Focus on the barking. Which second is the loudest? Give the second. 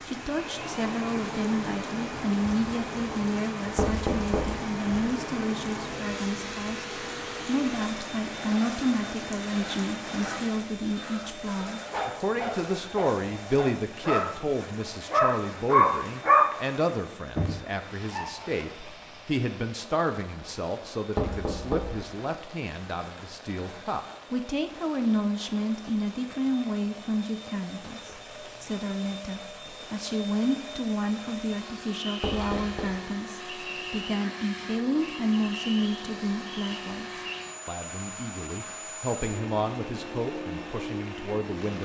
16 s.